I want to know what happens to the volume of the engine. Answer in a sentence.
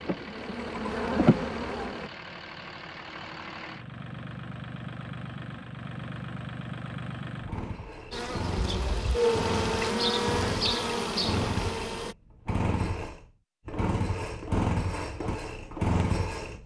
The loudness of the engine goes up.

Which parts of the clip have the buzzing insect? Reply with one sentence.
You can hear the buzzing insect from 0.0 to 2.1 s and from 8.1 to 12.2 s.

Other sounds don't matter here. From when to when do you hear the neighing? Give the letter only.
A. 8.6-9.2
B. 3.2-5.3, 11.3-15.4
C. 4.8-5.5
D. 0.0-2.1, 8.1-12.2
A.